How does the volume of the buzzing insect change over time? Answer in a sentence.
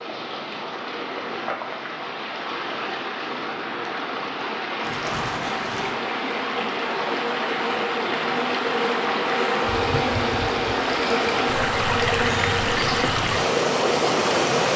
The loudness of the buzzing insect goes up.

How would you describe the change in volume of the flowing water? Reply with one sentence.
The loudness of the flowing water goes up.